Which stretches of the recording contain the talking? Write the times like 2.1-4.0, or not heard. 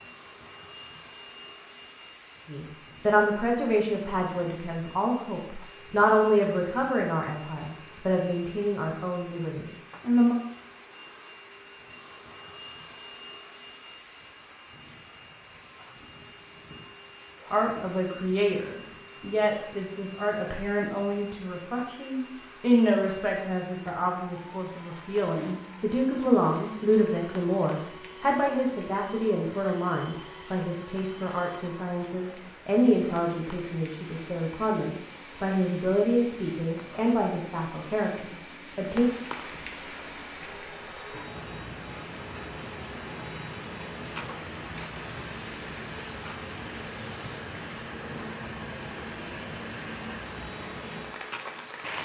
2.5-10.3, 17.5-39.1.